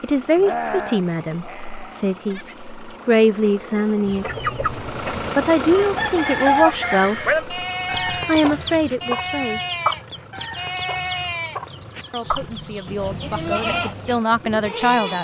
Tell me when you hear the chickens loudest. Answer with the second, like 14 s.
7 s.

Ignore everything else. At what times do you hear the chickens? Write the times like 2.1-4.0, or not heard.
4.0-14.2.